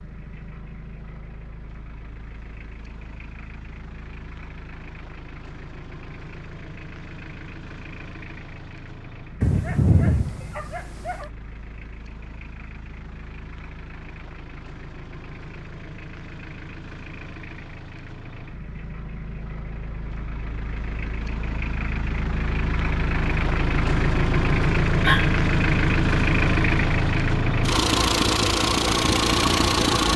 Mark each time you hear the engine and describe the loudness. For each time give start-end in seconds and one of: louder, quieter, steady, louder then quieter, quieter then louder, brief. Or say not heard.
0.0-30.1 louder.